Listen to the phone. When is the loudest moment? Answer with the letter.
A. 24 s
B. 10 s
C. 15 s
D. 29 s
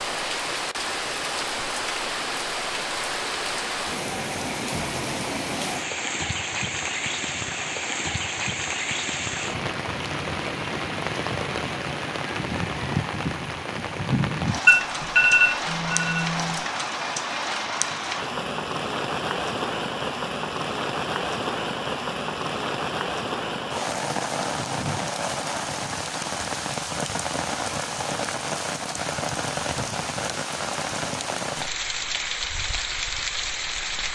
C.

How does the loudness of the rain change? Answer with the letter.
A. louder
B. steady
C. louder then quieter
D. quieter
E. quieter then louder
B.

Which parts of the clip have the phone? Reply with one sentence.
You can hear the phone from 14.7 to 16.6 s.